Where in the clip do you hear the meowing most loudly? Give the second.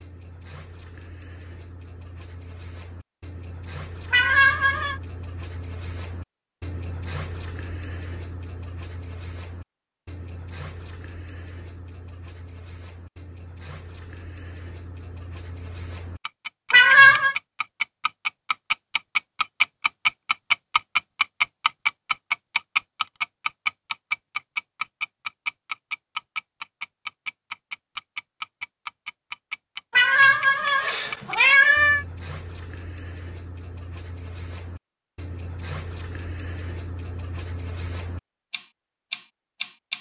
17 s.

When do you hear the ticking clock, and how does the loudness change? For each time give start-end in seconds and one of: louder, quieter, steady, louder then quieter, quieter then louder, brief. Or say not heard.
0.0-39.9 louder then quieter.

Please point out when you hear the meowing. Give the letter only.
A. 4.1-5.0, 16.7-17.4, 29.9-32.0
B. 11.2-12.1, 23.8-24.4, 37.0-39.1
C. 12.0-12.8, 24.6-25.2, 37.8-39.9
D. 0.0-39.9
A.